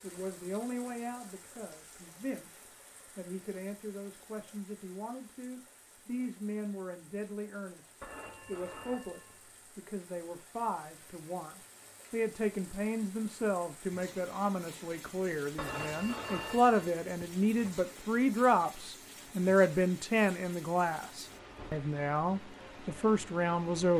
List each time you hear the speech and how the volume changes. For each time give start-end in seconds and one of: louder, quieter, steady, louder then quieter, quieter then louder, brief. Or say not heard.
0.0-23.9 louder.